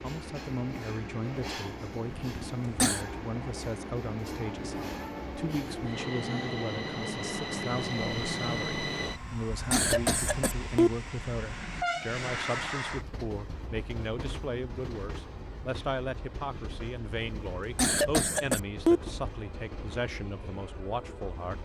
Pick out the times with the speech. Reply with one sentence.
The speech can be heard from 0.0 to 21.6 s.